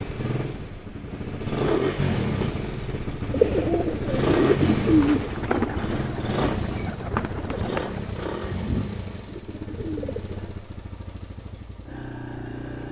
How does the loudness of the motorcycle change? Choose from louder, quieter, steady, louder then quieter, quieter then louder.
quieter.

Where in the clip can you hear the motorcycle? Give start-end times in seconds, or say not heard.
0.0-12.8.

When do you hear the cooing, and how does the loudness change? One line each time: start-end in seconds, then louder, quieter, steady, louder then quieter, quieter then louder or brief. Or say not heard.
3.3-10.6 quieter.